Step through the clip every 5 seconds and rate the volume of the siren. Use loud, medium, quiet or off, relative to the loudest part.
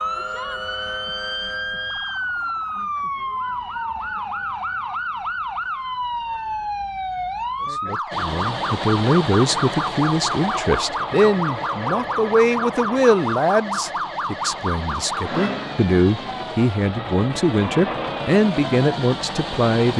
loud, loud, loud, medium.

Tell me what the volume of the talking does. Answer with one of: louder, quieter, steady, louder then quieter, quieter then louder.
steady.